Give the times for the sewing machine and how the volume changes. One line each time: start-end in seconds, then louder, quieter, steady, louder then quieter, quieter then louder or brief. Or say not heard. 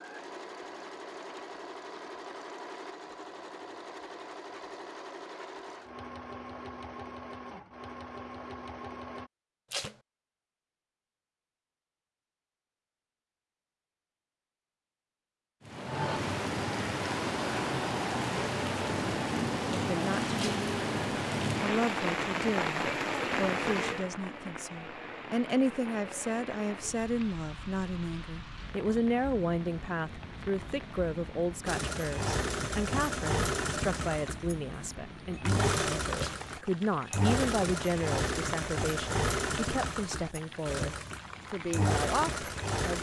0.0-9.3 steady
31.6-42.9 steady.